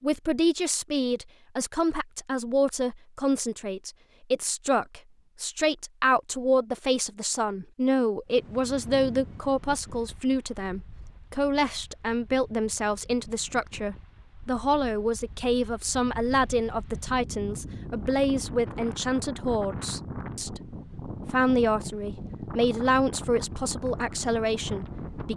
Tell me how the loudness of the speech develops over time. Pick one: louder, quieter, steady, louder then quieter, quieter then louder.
steady.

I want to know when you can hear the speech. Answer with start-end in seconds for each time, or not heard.
0.0-20.6, 21.3-25.3.